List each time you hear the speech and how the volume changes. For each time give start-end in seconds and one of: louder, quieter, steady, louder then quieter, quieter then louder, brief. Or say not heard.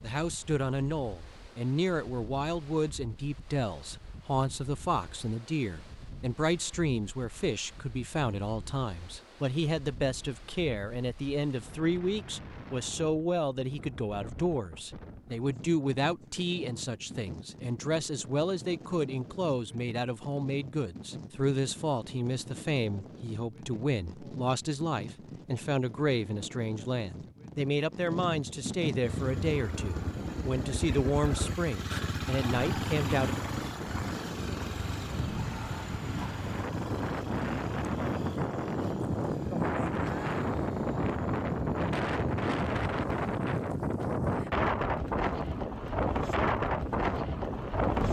0.0-33.4 steady.